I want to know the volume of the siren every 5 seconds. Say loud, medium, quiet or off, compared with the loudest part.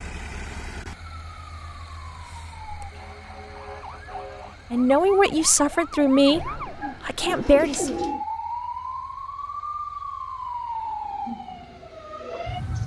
medium, loud, loud.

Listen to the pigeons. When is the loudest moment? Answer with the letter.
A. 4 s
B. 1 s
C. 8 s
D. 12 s
C.